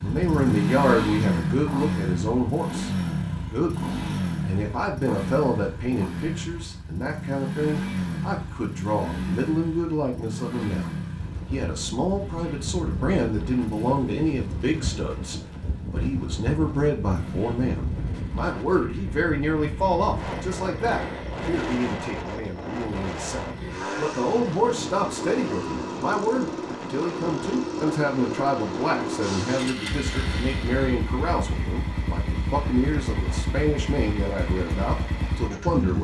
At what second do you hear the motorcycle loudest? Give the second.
1 s.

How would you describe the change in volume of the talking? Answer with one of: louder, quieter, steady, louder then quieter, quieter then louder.
steady.